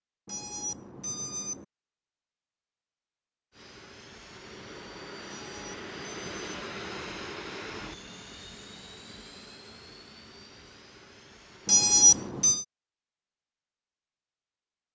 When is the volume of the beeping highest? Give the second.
12 s.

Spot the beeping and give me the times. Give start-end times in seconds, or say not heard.
0.2-1.6, 5.3-6.5, 11.7-12.7.